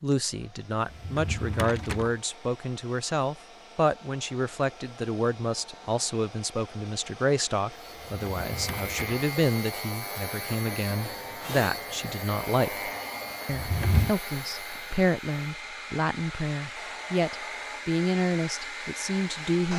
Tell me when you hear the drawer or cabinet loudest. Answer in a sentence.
The volume of the drawer or cabinet peaks at 14 seconds.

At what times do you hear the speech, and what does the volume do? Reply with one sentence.
The speech can be heard from 0.0 to 19.7 s, at a steady volume.